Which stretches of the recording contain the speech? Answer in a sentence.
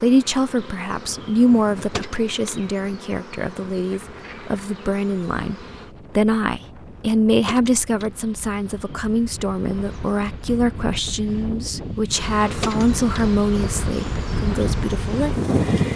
You can hear the speech from 0.0 to 5.5 s and from 6.2 to 15.3 s.